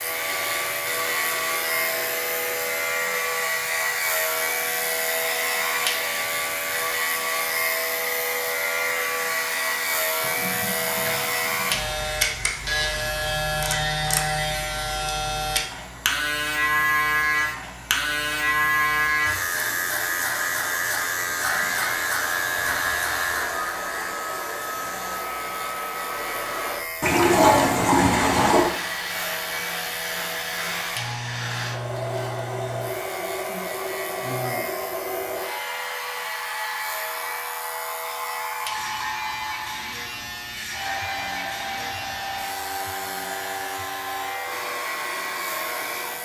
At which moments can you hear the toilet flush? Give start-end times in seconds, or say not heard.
10.2-11.9, 27.0-28.8.